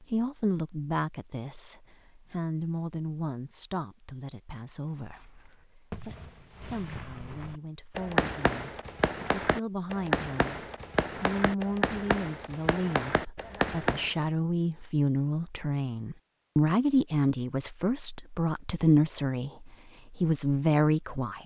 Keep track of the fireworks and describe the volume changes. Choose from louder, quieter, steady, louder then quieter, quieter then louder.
louder.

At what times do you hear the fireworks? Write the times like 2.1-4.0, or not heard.
4.9-14.2.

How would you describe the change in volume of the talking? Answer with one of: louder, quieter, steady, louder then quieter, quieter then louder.
quieter then louder.